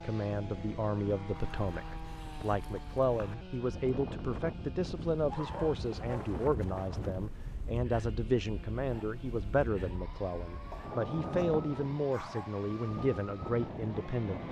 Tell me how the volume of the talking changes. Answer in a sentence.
The volume of the talking stays about the same.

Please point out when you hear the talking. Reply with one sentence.
You can hear the talking from 0.0 to 14.4 s.